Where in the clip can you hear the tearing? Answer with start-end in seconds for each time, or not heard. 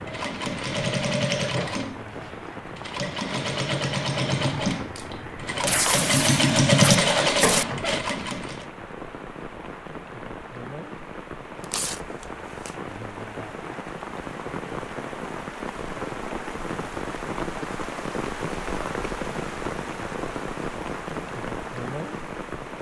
5.7-7.7, 11.6-12.7.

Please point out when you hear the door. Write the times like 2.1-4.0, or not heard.
not heard.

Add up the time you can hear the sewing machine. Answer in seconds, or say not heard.
9 s.